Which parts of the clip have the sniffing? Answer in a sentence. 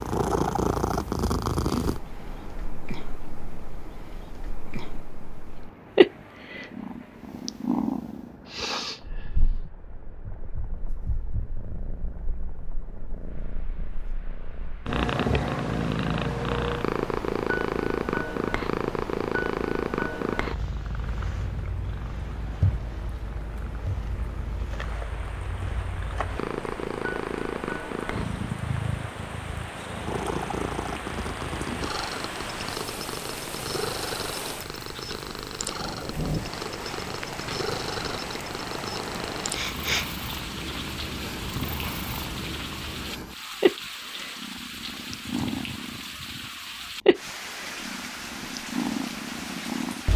You can hear the sniffing from 8.4 to 9.6 s and from 39.5 to 40.0 s.